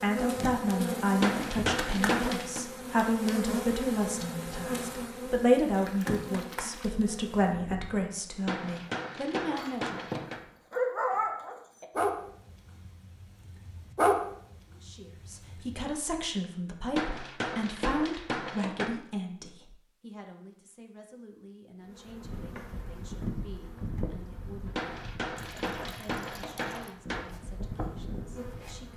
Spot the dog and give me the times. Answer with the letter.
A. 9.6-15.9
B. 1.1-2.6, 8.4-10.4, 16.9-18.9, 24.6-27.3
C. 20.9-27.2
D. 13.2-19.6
A.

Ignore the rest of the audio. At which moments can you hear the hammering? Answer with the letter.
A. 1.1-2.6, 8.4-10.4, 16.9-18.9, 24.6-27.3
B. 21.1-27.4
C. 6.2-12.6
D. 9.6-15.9
A.